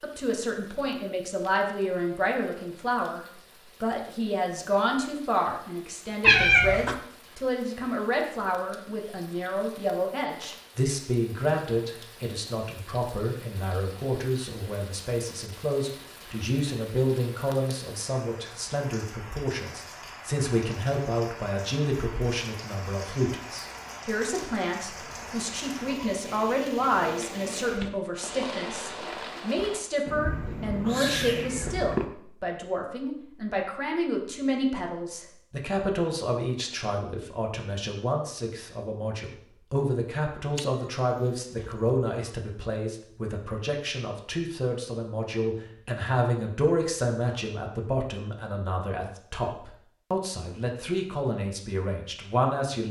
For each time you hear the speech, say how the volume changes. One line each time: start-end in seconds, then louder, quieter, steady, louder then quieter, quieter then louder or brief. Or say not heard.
0.0-52.8 steady.